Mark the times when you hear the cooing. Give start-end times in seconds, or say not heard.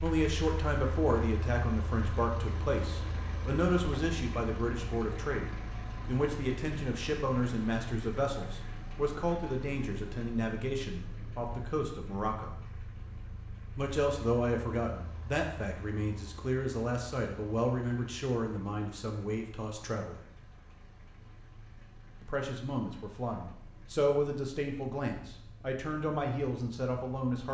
not heard.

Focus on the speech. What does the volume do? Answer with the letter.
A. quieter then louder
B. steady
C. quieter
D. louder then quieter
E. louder
B.